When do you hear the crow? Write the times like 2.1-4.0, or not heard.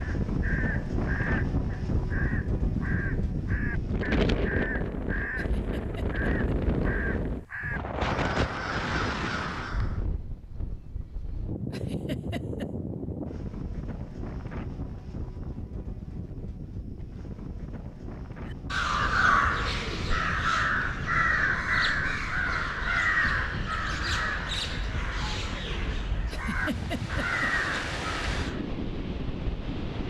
0.0-10.1, 18.4-28.6.